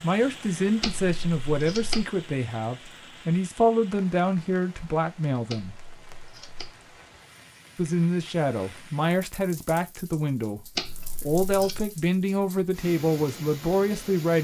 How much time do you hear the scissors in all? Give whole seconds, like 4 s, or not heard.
4 s.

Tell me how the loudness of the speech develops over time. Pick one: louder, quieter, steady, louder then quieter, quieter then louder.
steady.